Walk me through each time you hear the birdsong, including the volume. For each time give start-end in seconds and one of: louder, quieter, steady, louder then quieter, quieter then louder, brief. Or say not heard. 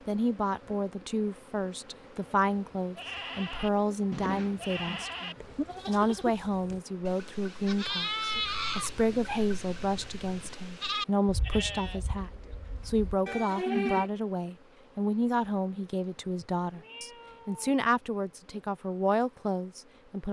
not heard.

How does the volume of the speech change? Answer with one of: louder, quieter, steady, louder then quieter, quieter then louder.
steady.